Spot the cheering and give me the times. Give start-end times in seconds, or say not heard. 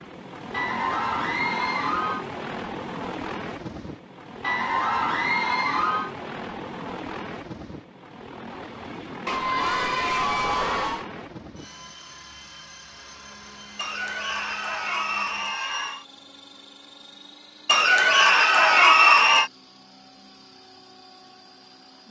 0.5-2.2, 4.4-6.1, 9.2-11.1, 13.8-16.1, 17.6-19.5.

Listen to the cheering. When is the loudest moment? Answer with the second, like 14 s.
19 s.